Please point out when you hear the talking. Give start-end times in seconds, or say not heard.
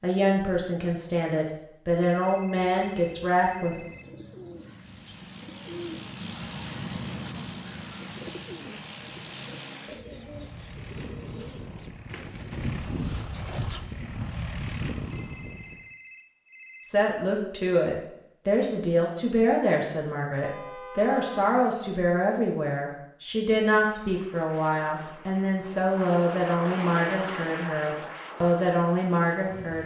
0.0-3.9, 16.8-29.8.